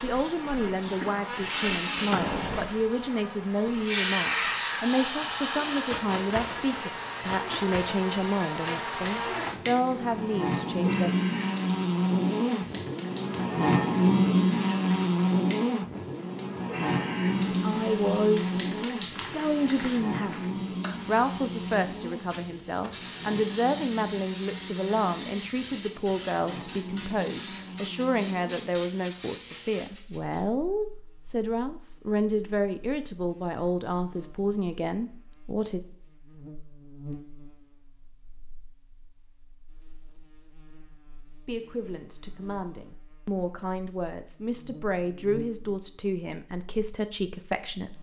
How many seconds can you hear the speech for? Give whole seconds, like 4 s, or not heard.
35 s.